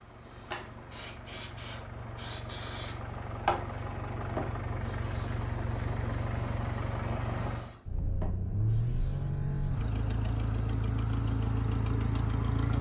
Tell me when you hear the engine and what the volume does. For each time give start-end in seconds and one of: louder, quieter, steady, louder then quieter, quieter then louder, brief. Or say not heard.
0.0-12.7 louder.